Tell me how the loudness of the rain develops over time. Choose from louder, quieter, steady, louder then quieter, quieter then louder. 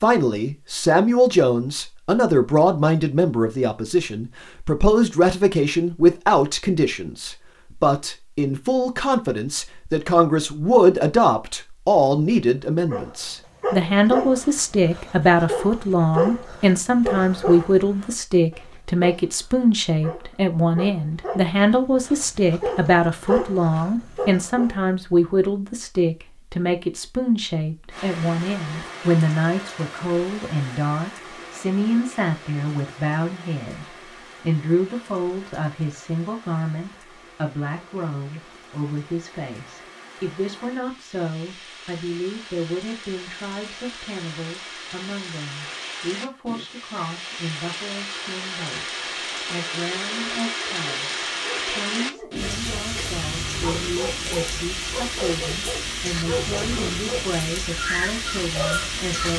quieter then louder.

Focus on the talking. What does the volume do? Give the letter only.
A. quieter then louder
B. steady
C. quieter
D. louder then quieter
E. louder
C.